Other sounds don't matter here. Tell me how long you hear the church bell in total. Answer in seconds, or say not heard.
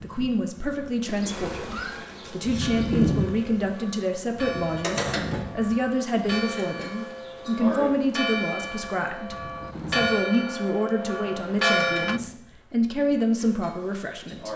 10 s.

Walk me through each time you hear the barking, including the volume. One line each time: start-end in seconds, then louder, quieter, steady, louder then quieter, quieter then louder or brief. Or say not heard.
not heard.